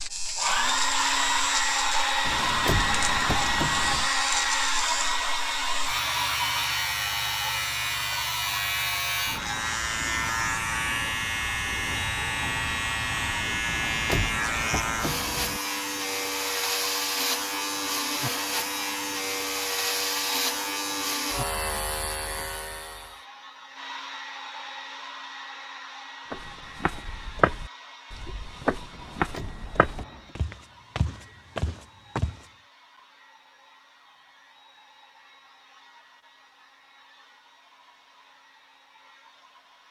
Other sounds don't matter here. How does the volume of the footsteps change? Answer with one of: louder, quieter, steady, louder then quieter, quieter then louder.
quieter then louder.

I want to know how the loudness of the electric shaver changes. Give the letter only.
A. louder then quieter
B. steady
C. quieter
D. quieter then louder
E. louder
B.